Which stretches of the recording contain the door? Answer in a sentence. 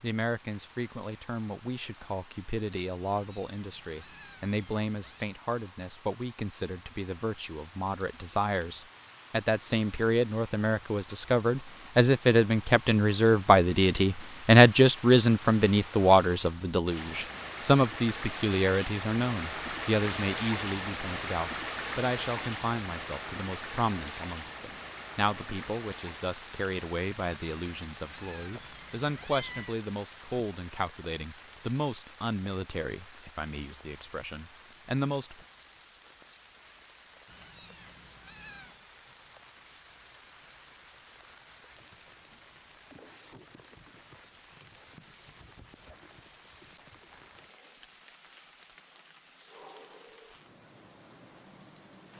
The door can't be heard in this clip.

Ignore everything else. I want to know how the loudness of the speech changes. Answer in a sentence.
The loudness of the speech goes up, then down.